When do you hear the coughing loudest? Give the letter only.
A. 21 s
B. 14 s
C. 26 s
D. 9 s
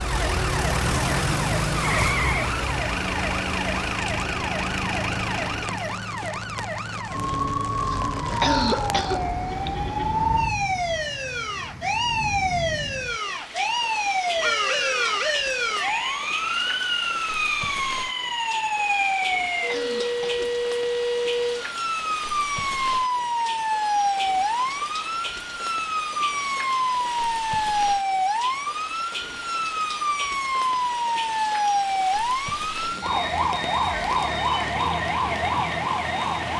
D.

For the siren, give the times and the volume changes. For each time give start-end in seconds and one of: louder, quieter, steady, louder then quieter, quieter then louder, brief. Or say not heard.
0.0-36.5 steady.